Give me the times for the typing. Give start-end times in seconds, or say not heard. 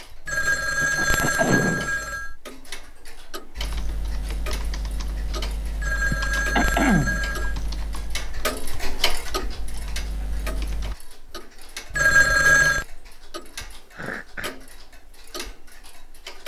3.5-10.9.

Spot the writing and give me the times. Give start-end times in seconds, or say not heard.
not heard.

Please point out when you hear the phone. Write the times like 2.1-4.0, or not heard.
0.2-2.3, 5.8-7.5, 11.9-12.8.